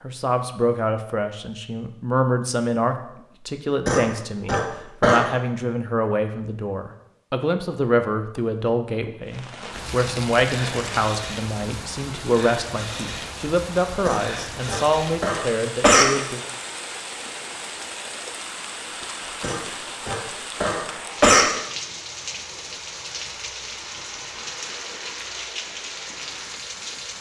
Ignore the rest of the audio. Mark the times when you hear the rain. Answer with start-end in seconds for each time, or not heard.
9.2-27.1.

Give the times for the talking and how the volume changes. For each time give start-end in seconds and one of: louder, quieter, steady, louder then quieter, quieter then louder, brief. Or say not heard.
0.0-16.4 steady.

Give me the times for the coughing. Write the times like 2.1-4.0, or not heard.
3.9-5.2, 14.1-16.1, 19.4-21.4.